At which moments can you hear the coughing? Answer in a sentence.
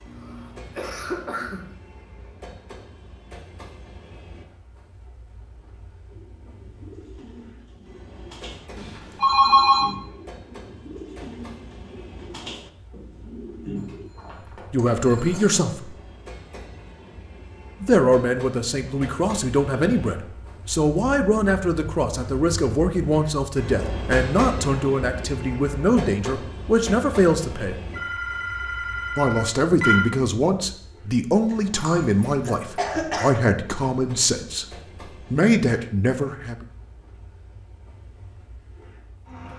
The coughing can be heard from 0.1 to 1.7 s, from 14.8 to 15.6 s and from 31.4 to 33.3 s.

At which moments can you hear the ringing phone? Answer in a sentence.
You can hear the ringing phone from 8.8 to 9.9 s, from 13.8 to 15.6 s and from 27.9 to 30.1 s.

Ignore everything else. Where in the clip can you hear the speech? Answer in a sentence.
The speech can be heard from 14.7 to 15.9 s, from 17.8 to 27.8 s, from 29.1 to 34.6 s and from 35.3 to 36.6 s.